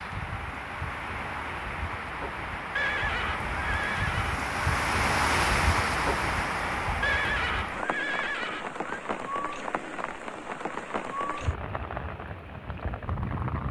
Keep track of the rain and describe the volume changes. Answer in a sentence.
The volume of the rain goes up, then down.